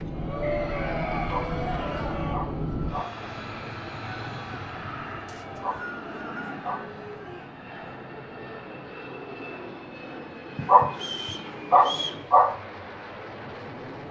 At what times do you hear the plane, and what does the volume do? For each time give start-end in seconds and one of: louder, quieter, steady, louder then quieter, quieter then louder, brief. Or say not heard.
0.0-14.0 quieter.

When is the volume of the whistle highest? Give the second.
12 s.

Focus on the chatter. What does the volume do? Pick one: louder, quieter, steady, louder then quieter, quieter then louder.
quieter.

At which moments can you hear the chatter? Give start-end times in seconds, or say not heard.
0.0-7.5.